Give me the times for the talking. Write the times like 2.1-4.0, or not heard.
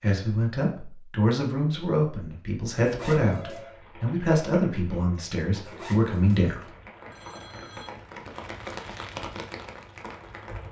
0.0-6.7.